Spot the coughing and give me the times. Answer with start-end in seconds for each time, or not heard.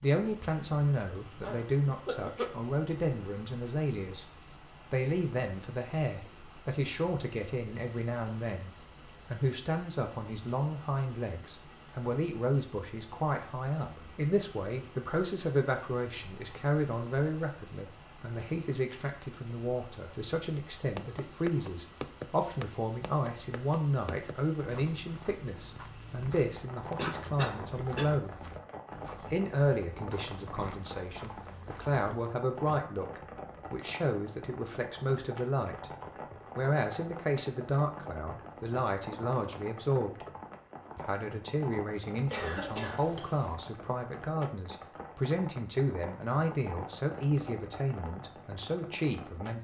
1.4-2.5, 26.9-28.1, 42.2-43.5.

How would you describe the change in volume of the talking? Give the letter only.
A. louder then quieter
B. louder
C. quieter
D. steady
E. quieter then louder
D.